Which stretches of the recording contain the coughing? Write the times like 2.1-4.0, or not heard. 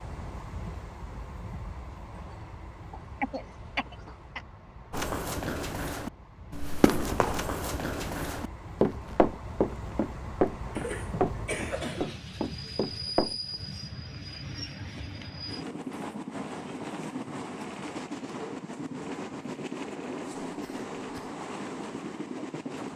2.9-4.4, 10.8-12.2, 20.4-21.4.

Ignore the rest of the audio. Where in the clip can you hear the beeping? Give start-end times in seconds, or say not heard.
not heard.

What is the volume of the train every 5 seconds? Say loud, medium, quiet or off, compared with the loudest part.
medium, medium, loud, loud, loud.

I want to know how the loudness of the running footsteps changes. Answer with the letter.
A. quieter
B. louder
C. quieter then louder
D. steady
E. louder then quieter
E.